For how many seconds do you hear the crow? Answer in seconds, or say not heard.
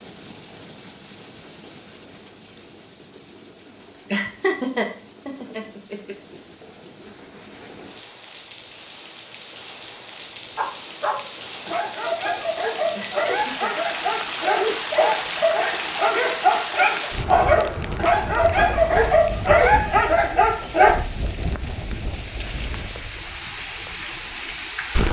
not heard.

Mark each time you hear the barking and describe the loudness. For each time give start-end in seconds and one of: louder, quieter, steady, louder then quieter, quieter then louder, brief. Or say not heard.
10.6-20.9 louder.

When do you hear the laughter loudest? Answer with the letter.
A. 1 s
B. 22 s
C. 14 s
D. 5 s
D.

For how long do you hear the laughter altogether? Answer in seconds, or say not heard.
3 s.